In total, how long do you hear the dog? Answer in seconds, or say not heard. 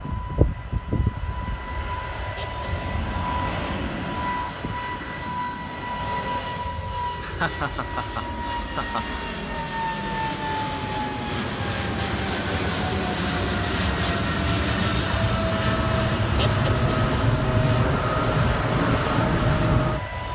not heard.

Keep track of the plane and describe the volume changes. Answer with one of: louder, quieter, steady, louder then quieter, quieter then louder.
louder.